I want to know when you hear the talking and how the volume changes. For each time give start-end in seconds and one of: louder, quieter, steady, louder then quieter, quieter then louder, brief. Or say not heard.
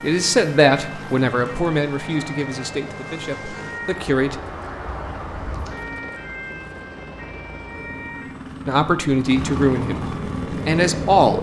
0.0-4.4 quieter
8.7-11.3 brief.